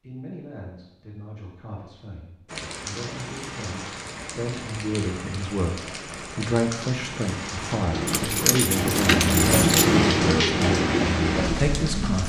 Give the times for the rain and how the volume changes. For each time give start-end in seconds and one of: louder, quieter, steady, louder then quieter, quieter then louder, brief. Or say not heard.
2.5-12.2 louder.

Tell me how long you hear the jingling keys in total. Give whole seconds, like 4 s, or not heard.
2 s.